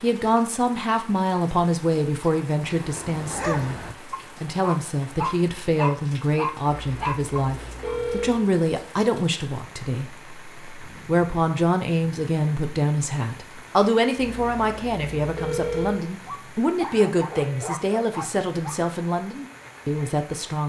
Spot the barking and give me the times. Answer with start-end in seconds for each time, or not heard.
2.6-8.0, 16.2-18.8.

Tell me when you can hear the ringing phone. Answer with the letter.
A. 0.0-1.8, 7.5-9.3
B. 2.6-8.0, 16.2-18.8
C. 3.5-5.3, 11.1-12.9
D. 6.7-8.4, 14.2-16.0
D.